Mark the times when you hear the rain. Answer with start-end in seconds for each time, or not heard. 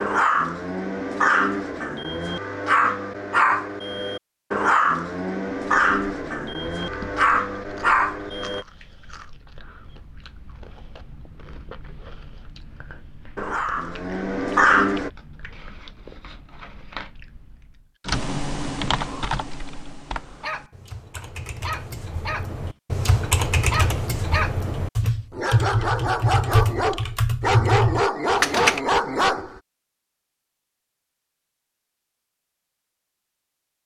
not heard.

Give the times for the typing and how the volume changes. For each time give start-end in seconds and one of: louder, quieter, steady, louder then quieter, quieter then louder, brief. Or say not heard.
18.1-28.8 quieter then louder.